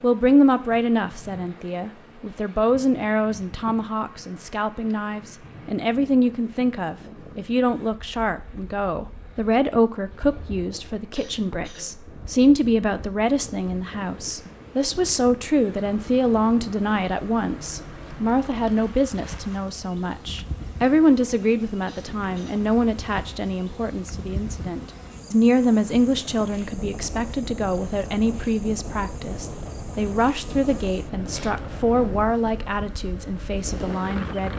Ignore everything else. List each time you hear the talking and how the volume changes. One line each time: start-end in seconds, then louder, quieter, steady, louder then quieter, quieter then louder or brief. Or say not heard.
0.0-34.5 steady.